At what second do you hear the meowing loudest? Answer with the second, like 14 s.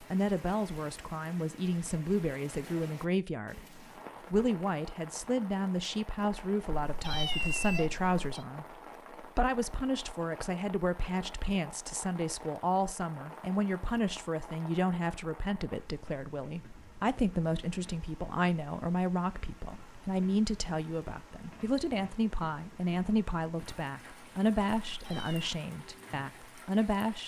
7 s.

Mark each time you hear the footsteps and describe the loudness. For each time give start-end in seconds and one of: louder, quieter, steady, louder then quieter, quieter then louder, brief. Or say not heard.
not heard.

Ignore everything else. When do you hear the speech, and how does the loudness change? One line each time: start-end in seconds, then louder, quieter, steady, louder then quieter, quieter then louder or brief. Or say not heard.
0.0-27.2 steady.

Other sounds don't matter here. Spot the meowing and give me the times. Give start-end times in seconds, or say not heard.
6.7-8.4, 24.9-25.5.